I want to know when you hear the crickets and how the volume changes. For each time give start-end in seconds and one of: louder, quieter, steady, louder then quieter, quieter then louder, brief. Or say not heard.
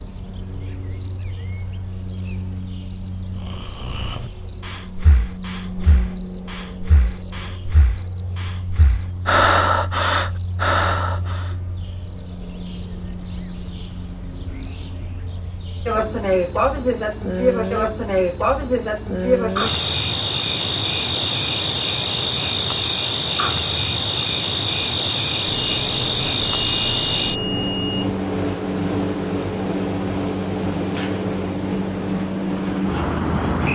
0.0-33.6 steady.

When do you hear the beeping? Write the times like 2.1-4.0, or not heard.
25.4-28.1.